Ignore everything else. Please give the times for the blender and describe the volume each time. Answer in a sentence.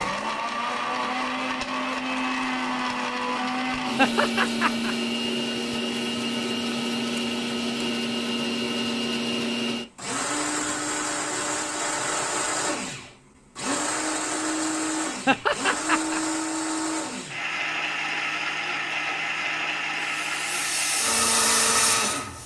The blender can be heard from 0.0 to 22.4 s, at a steady volume.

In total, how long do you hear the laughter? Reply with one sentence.
The laughter can be heard for 2 seconds in total.